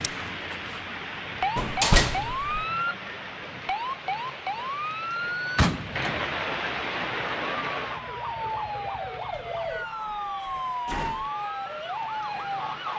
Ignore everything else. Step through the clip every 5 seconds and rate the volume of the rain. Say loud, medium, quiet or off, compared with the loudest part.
loud, loud, medium.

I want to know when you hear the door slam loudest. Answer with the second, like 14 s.
2 s.